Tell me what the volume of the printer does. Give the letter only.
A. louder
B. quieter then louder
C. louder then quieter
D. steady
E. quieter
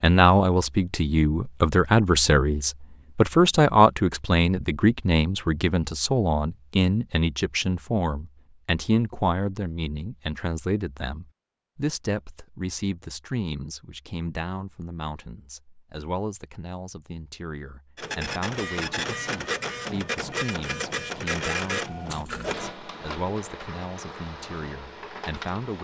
E.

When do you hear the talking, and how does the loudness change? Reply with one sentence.
The talking can be heard from 0.0 to 25.7 s, getting quieter.